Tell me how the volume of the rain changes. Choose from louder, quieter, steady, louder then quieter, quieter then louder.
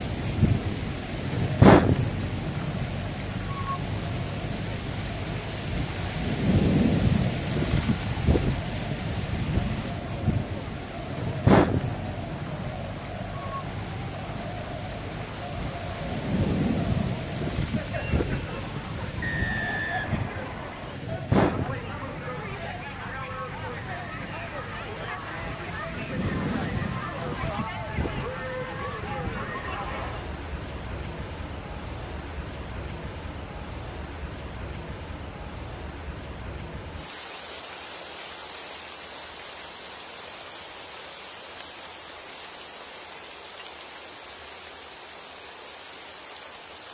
quieter.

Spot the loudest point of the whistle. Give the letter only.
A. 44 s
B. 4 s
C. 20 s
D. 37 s
C.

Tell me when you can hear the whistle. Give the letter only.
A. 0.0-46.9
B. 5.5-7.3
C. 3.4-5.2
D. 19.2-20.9
D.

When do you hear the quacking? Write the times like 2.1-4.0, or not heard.
not heard.